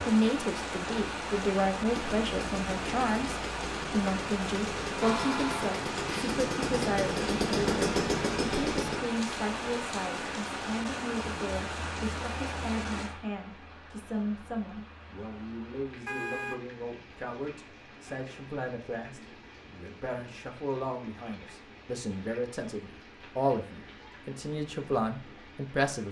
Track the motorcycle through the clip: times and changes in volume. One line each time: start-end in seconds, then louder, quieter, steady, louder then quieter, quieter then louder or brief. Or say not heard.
1.9-9.0 louder.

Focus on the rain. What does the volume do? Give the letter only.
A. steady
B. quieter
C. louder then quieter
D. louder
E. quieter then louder
B.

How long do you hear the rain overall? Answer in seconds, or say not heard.
26 s.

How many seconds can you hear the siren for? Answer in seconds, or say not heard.
not heard.